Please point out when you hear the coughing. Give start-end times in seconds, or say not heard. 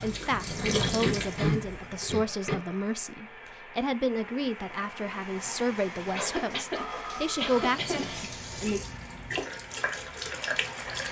0.6-2.5, 6.1-8.1.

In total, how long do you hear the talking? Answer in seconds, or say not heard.
9 s.